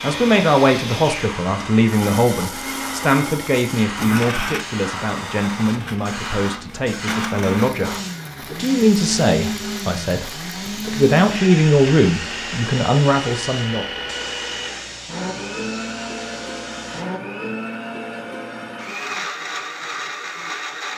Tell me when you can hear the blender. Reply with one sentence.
You can hear the blender from 0.0 to 20.9 s.